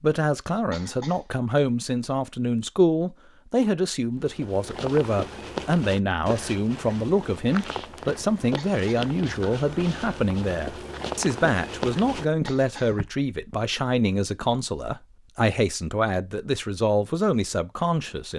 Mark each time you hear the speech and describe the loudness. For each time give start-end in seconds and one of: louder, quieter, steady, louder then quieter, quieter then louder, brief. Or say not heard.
0.0-18.3 steady.